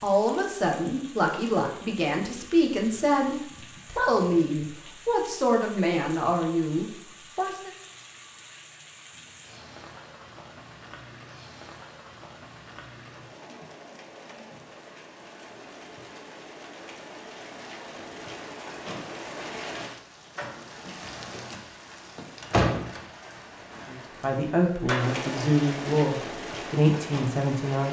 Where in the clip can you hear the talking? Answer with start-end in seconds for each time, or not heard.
0.0-7.7, 23.9-27.8.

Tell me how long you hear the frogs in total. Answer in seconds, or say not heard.
not heard.